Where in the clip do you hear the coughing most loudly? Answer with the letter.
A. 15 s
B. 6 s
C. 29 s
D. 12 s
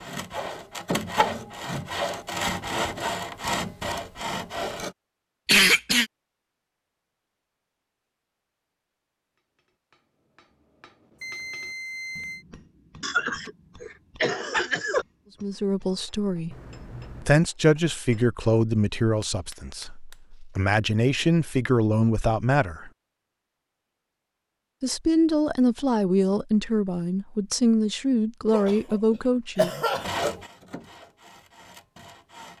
B.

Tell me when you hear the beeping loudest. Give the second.
12 s.